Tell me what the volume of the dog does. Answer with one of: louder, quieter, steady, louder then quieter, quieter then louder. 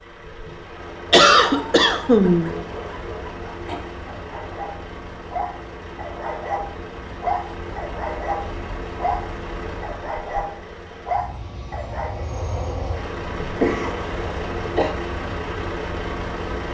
louder.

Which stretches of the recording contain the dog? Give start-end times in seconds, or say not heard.
1.4-12.2.